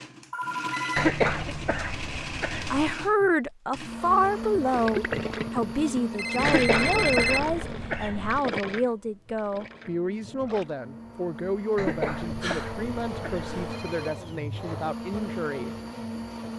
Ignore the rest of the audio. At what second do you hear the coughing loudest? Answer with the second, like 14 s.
1 s.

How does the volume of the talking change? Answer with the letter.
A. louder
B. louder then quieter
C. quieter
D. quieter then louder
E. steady
C.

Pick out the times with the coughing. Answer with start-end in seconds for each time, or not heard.
0.9-3.0, 6.4-8.4, 11.8-13.5.